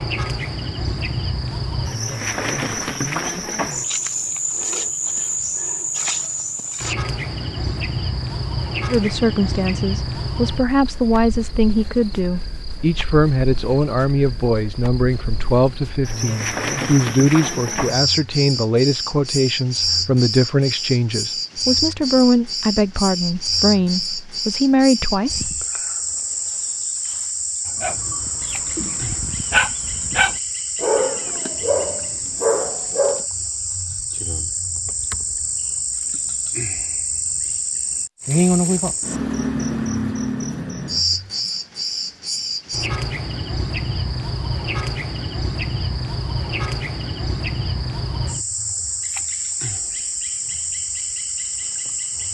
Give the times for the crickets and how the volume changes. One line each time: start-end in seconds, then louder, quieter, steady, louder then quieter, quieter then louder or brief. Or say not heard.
0.0-52.2 steady.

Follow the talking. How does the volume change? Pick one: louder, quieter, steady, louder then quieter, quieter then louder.
steady.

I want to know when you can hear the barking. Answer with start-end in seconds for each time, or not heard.
27.8-33.2.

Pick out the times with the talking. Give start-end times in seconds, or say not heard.
8.8-25.6.